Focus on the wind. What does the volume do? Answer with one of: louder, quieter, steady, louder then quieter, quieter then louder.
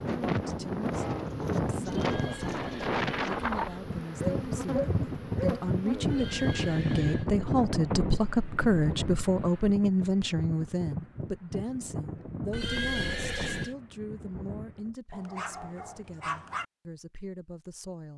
quieter.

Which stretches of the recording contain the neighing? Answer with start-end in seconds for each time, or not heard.
1.9-3.9, 6.1-7.3, 12.5-13.8.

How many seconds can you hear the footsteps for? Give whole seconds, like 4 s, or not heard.
not heard.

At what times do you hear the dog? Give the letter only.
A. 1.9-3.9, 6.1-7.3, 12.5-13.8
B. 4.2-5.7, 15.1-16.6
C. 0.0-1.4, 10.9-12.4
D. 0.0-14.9
B.